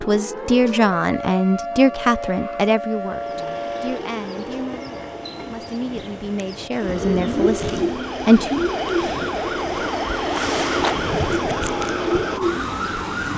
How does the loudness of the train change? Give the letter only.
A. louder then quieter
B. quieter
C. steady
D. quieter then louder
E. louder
E.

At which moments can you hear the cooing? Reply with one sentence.
The cooing can be heard from 6.8 to 9.3 s and from 11.2 to 13.3 s.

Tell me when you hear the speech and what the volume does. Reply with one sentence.
The speech can be heard from 0.0 to 8.7 s, getting quieter then louder.